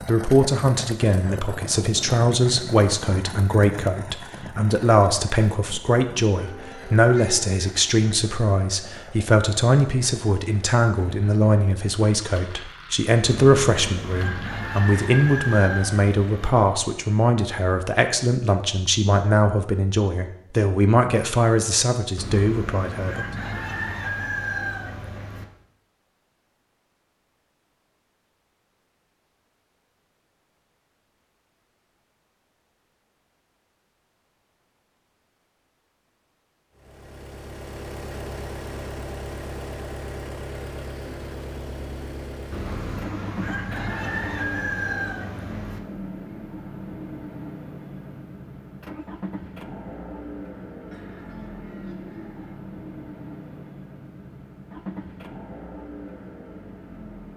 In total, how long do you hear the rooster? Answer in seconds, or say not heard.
10 s.